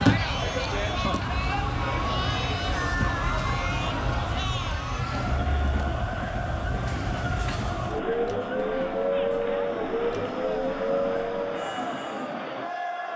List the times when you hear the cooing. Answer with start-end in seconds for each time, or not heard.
not heard.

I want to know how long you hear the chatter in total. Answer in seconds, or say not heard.
13 s.